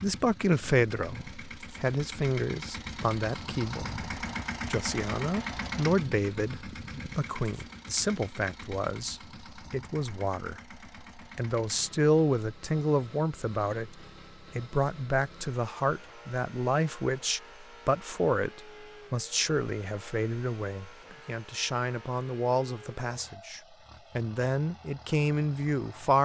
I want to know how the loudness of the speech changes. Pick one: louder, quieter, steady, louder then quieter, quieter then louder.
steady.